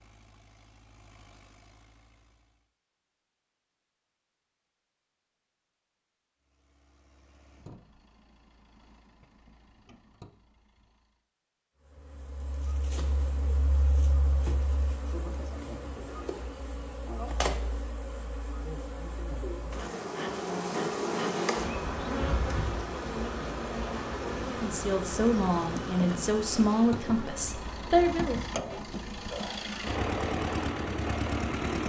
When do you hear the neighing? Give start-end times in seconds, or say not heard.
not heard.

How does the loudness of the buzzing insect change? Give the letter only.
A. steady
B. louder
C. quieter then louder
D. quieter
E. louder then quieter
E.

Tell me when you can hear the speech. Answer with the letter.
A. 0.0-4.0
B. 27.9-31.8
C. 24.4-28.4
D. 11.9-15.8
C.